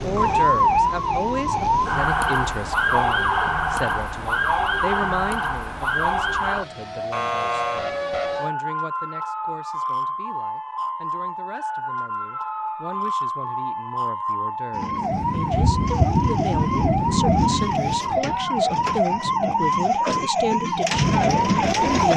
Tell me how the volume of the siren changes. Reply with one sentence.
The volume of the siren goes down, then up.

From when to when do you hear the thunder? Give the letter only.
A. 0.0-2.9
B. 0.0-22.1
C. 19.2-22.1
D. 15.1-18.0
D.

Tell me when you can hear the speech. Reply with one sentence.
The speech can be heard from 0.0 to 22.1 s.